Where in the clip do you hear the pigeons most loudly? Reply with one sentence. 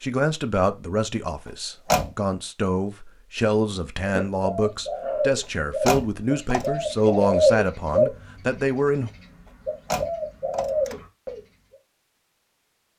The loudest moment of the pigeons is at 7 seconds.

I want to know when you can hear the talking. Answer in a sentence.
You can hear the talking from 0.0 to 9.1 s.